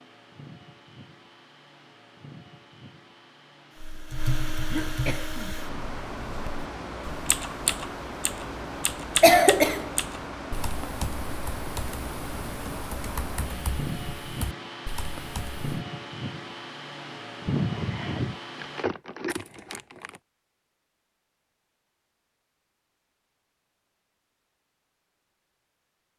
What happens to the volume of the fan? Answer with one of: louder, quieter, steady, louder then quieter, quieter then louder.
louder.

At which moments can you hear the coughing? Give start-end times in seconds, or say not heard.
4.7-5.5, 9.2-9.9, 17.4-18.4.